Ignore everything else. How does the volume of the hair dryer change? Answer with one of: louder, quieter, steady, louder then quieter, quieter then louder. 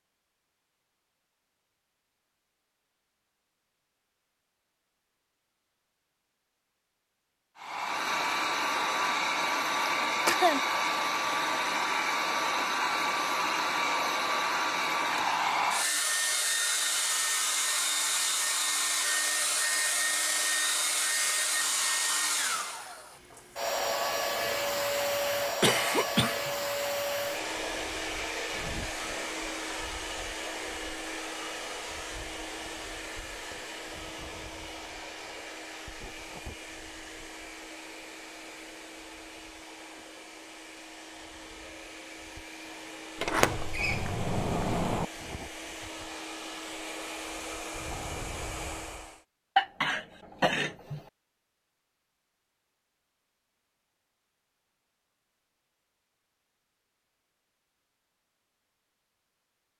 quieter.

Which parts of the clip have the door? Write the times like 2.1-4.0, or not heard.
43.1-45.0.